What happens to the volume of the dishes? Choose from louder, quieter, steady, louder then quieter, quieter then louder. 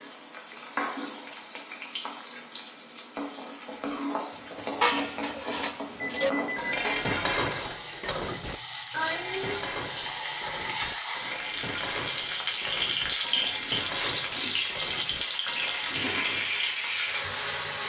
quieter.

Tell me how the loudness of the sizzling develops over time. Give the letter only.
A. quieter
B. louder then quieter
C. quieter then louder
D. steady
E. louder
E.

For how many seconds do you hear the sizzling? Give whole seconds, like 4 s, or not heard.
18 s.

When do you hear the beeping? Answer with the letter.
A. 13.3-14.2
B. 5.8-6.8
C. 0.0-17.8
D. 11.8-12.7
B.